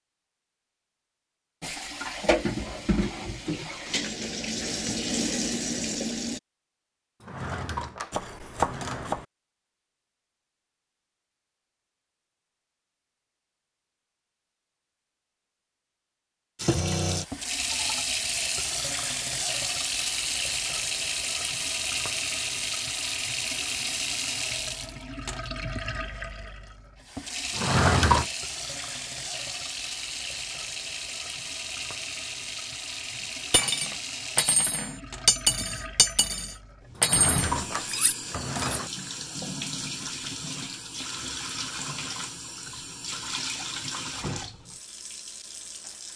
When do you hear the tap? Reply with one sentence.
The tap can be heard from 1.6 to 6.4 s and from 16.6 to 46.1 s.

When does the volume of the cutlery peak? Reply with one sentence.
The loudest moment of the cutlery is at 35 seconds.